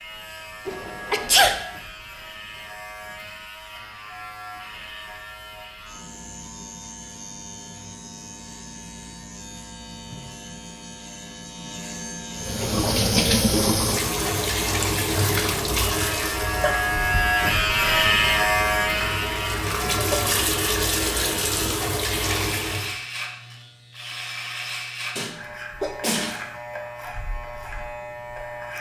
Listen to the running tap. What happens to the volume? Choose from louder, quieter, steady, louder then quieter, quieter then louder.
quieter then louder.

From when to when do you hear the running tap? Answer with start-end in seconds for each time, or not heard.
12.3-22.9.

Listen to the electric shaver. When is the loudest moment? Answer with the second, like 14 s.
18 s.